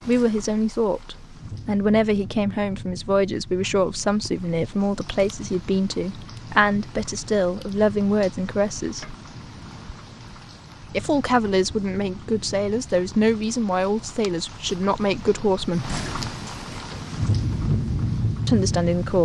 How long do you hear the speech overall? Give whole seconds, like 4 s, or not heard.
15 s.